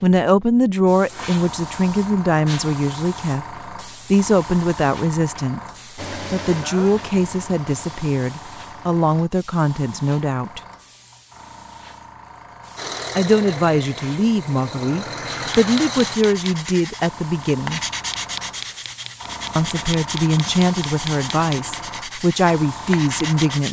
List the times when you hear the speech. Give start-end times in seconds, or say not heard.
0.0-3.5, 4.1-10.6, 13.2-17.8, 19.6-23.6.